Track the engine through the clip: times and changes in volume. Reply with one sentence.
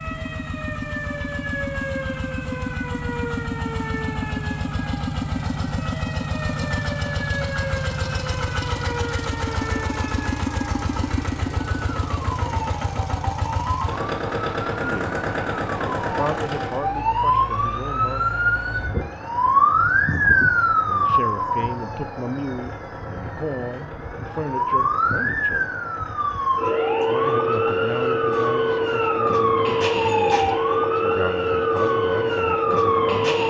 You can hear the engine from 0.0 to 33.4 s, getting quieter.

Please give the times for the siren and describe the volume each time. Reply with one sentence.
The siren can be heard from 0.0 to 33.4 s, getting louder.